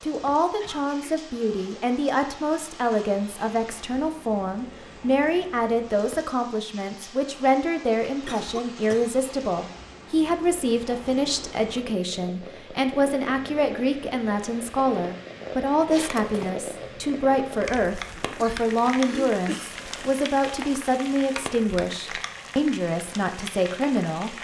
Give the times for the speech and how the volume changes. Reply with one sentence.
You can hear the speech from 0.0 to 24.3 s, at a steady volume.